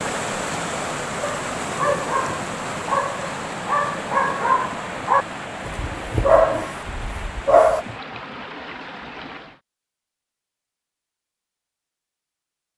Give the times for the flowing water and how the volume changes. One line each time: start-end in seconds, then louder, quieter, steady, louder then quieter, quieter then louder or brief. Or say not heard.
0.0-9.6 quieter.